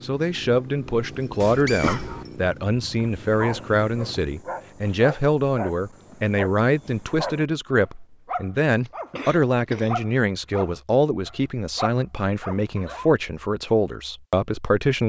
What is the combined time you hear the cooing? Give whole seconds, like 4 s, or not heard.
not heard.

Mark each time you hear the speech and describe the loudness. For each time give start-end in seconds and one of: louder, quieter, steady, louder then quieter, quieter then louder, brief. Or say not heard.
0.0-15.0 steady.